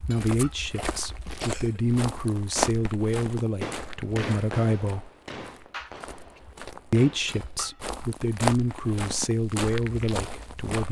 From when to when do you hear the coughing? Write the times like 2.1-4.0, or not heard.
0.8-1.8, 5.7-6.4.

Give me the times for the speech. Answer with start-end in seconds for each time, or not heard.
0.1-5.0, 6.9-10.8.